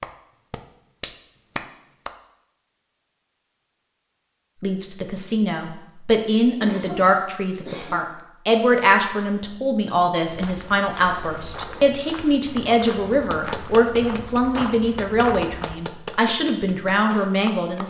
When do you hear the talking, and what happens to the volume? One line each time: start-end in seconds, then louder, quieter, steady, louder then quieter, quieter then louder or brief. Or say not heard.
4.6-17.8 steady.